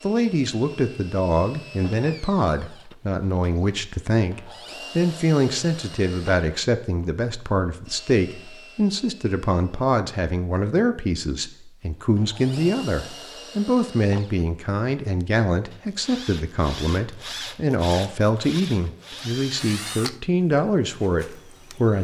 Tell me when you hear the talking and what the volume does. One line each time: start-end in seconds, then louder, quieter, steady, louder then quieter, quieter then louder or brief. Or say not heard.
0.0-21.9 steady.